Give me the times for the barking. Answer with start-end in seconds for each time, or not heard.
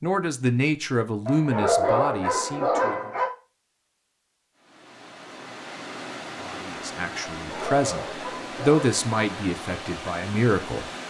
1.2-3.2, 7.4-9.1.